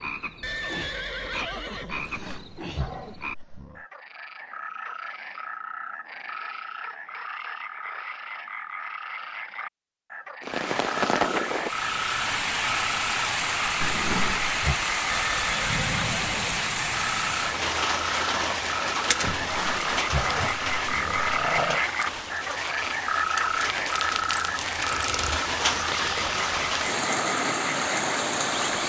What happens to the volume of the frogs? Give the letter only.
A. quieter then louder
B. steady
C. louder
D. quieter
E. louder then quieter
C.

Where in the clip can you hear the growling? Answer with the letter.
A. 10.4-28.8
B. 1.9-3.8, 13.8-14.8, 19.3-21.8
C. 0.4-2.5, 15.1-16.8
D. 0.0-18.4
B.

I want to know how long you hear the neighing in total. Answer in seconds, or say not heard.
4 s.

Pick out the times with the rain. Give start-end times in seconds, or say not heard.
10.4-28.8.